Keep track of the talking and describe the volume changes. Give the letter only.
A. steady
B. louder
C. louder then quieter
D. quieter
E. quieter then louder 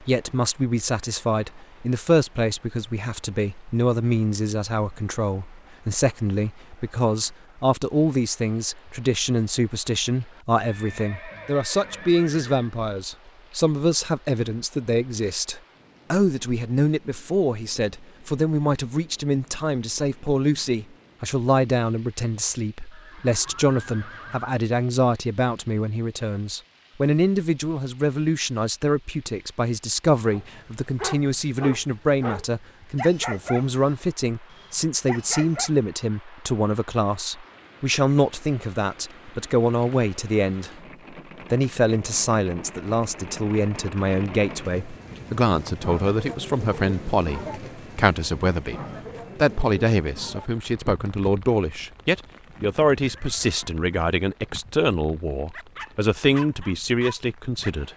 A.